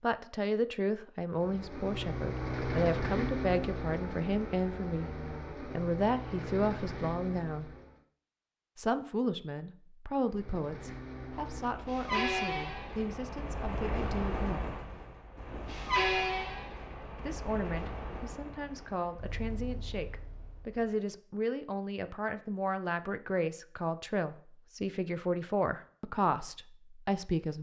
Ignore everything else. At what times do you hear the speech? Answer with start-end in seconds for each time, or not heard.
0.0-7.7, 8.8-14.7, 17.2-27.5.